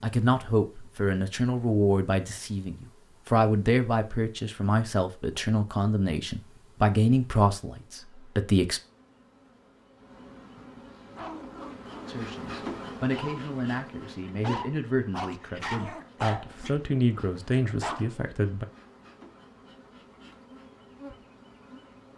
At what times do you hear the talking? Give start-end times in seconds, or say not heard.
0.0-8.8, 12.1-18.6.